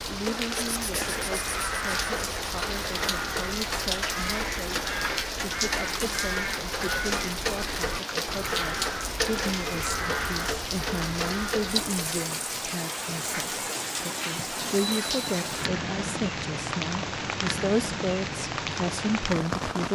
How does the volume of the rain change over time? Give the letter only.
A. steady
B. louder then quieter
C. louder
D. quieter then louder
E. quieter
A.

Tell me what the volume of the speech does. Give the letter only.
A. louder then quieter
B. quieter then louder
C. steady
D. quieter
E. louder
E.